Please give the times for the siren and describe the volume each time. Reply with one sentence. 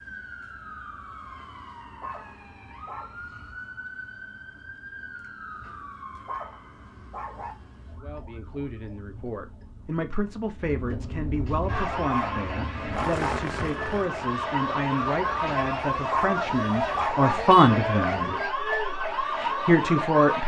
The siren can be heard from 0.0 to 20.4 s, getting louder.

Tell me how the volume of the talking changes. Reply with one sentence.
The loudness of the talking goes up.